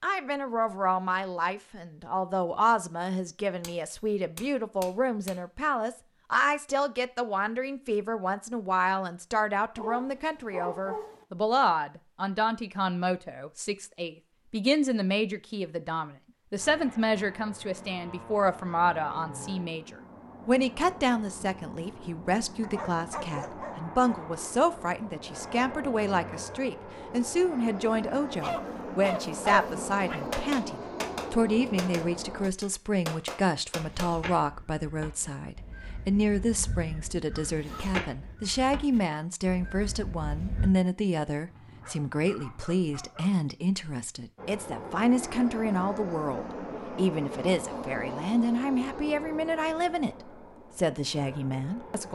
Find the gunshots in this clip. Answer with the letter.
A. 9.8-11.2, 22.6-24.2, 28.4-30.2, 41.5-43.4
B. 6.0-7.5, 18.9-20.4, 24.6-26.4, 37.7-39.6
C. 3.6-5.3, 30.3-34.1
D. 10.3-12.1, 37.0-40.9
C.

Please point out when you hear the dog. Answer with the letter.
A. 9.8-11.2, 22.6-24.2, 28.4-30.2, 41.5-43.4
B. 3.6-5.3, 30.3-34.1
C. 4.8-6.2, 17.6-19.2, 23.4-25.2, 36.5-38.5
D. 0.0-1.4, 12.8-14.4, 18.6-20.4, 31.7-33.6
A.